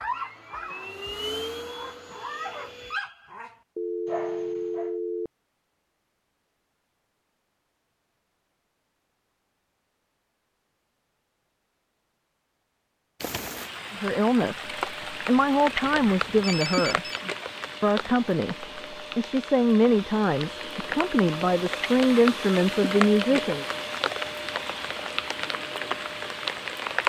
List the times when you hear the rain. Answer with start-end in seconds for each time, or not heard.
13.2-27.0.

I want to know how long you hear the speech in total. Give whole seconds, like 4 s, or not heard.
9 s.